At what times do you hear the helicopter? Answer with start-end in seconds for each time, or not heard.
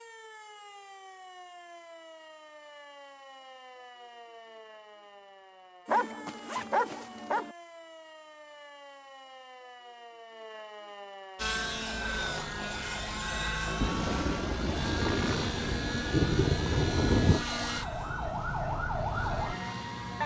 11.3-20.2.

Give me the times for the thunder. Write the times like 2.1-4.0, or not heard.
13.8-17.4.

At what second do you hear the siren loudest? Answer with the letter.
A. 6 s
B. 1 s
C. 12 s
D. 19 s
D.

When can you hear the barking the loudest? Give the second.
6 s.